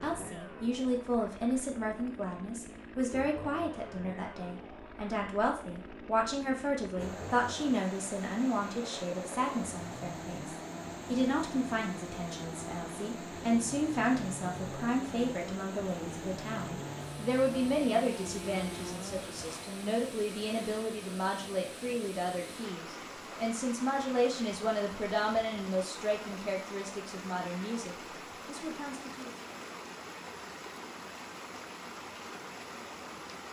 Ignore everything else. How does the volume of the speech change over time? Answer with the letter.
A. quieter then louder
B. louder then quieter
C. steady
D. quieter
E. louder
C.